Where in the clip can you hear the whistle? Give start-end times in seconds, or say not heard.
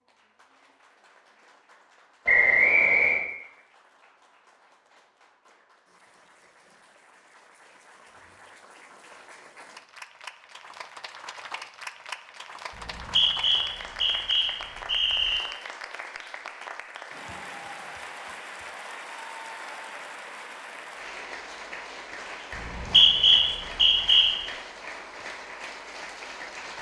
2.2-3.2, 12.8-15.4, 22.6-24.3.